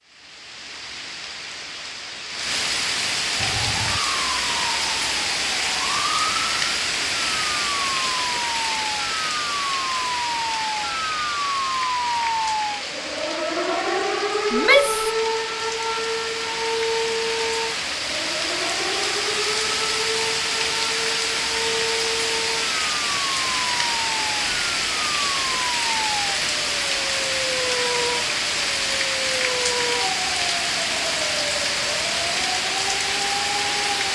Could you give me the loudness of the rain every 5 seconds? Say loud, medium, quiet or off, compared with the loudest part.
loud, loud, medium, loud, loud, loud, loud.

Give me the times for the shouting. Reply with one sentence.
You can hear the shouting from 14.5 to 15.1 s.